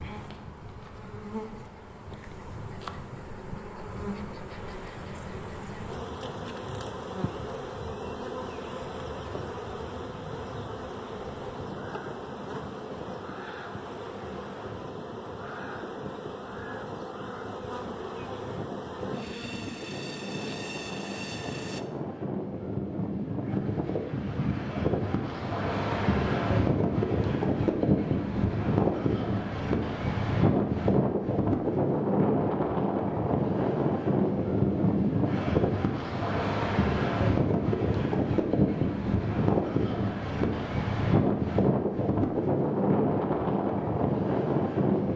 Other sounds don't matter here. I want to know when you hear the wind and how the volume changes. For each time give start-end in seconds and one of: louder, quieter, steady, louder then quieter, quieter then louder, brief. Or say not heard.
0.0-45.1 louder.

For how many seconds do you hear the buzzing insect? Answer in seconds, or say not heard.
22 s.